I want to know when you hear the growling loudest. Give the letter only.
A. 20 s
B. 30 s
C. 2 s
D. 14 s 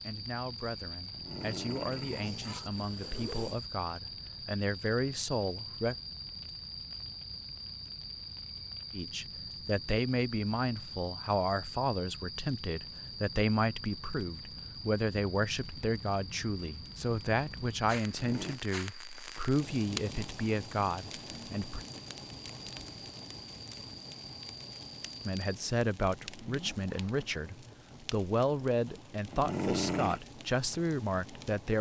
B.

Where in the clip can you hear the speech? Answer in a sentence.
The speech can be heard from 0.0 to 6.0 s, from 8.9 to 21.9 s and from 25.2 to 31.7 s.